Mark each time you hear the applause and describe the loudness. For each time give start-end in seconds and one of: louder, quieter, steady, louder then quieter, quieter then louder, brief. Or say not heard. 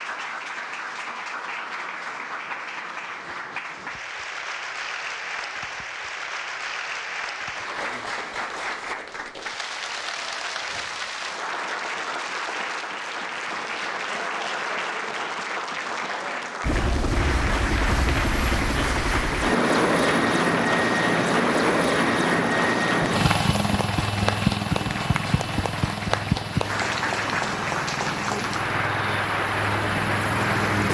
0.0-30.8 louder.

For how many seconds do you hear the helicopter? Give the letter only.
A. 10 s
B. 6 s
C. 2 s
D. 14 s
D.